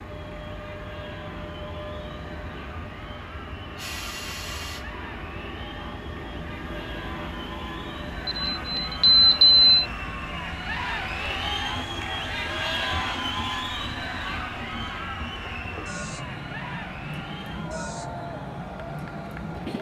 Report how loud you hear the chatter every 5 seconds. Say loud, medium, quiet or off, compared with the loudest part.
quiet, medium, loud, medium.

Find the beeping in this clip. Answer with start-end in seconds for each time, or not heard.
8.2-9.7.